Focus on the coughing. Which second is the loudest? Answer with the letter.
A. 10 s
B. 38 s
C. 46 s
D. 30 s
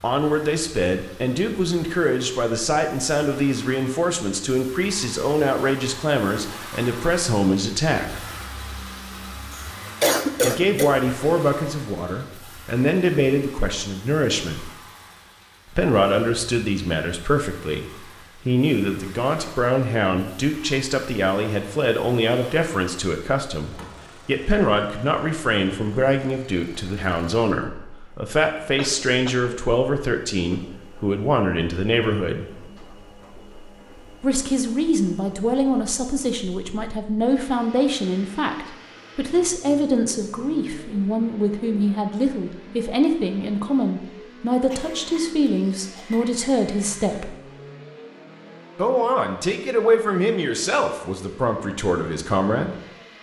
A.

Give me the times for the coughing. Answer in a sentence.
The coughing can be heard from 9.5 to 10.9 s, from 28.8 to 29.6 s and from 44.6 to 46.5 s.